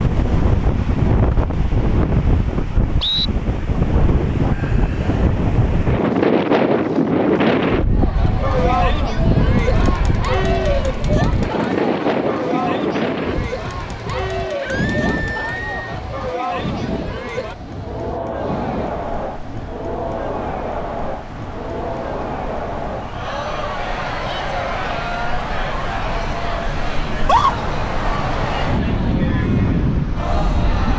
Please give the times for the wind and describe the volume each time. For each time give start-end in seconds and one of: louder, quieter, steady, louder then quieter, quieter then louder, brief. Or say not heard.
0.0-30.9 quieter then louder.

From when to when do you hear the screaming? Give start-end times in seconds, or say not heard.
4.5-5.4, 14.6-15.9, 27.1-27.6.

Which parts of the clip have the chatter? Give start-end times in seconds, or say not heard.
7.9-30.9.